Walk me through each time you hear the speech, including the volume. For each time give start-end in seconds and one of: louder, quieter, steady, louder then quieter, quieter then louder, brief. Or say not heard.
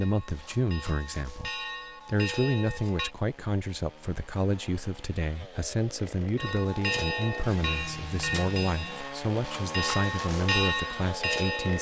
0.0-11.7 steady.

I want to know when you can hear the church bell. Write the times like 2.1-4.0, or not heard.
0.0-3.1, 6.3-11.7.